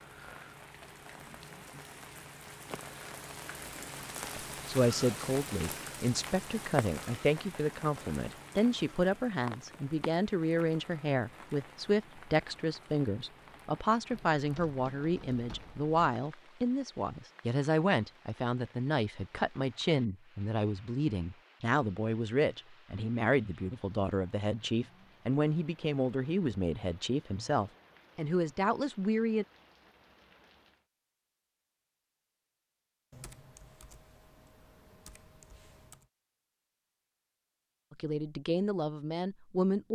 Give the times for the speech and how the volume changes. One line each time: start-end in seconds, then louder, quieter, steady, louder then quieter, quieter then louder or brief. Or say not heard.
4.3-29.4 steady
37.9-39.9 brief.